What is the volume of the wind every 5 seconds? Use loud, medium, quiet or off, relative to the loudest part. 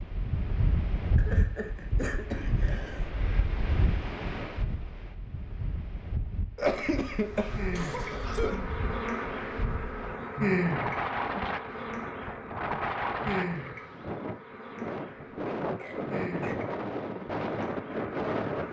loud, medium, loud, loud.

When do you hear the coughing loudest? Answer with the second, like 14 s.
7 s.